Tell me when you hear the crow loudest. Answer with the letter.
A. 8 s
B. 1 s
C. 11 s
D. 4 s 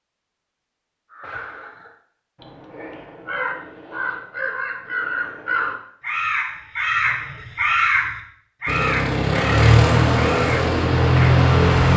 A.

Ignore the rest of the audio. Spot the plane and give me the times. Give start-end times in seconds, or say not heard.
8.7-11.9.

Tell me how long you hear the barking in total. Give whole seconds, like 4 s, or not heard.
not heard.